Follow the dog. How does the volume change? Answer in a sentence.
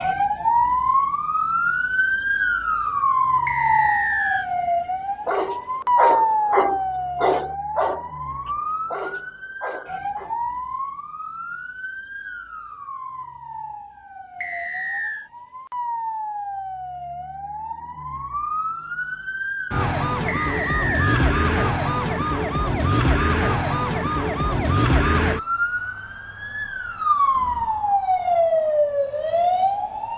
The volume of the dog goes down.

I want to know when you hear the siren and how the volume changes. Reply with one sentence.
The siren can be heard from 0.0 to 30.1 s, getting quieter then louder.